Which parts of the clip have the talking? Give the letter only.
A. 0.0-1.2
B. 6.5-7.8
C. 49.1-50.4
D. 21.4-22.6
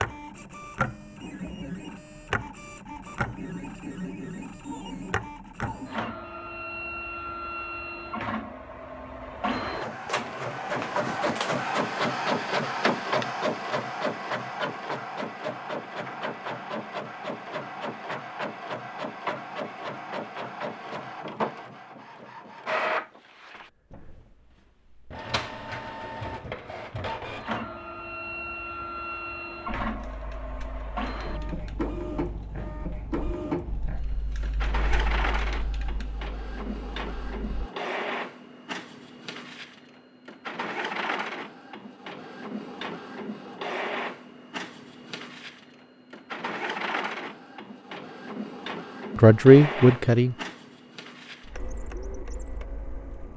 C.